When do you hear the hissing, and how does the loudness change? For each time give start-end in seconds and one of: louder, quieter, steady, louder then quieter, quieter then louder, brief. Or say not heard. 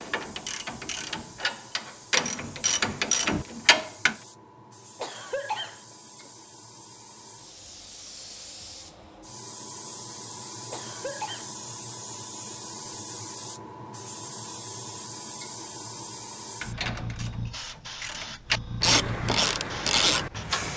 0.0-20.7 louder.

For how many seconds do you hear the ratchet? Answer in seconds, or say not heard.
8 s.